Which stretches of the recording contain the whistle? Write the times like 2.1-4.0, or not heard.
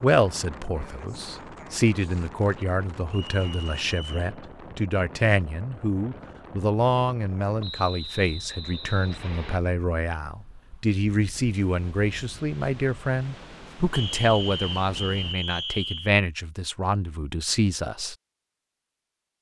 3.1-4.3, 7.6-9.6, 13.9-16.1.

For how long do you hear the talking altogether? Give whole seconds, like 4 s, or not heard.
18 s.